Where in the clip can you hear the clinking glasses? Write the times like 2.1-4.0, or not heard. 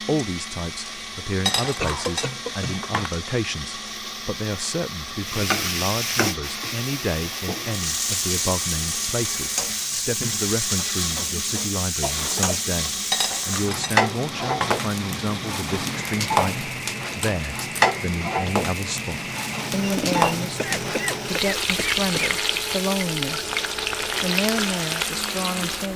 1.4-3.1, 13.1-14.9, 19.9-20.3.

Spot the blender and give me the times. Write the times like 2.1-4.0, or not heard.
0.0-25.9.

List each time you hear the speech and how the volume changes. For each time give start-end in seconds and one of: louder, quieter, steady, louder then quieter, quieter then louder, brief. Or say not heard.
0.0-23.5 steady
24.2-25.9 brief.